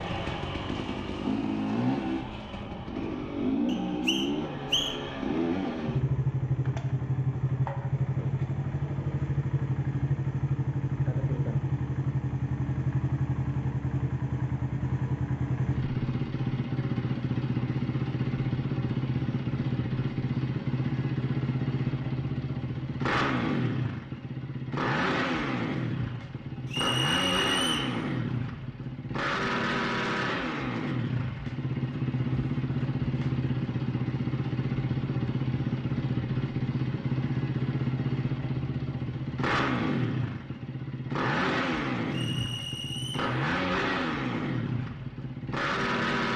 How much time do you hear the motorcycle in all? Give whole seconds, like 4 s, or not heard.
46 s.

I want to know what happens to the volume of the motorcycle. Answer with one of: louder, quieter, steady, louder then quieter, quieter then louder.
steady.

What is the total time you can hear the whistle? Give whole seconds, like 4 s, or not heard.
4 s.